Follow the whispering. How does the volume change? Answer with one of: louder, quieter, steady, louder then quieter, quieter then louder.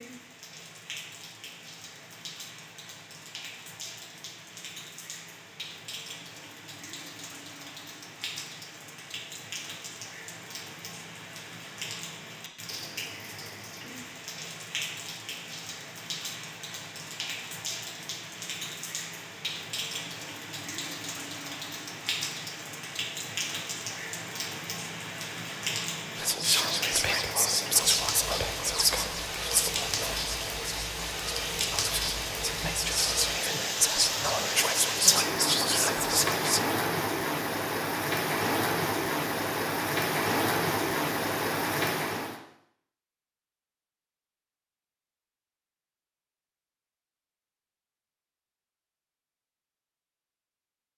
quieter then louder.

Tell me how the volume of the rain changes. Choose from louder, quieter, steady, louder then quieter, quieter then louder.
louder.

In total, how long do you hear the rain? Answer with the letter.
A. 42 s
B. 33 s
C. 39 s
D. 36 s
A.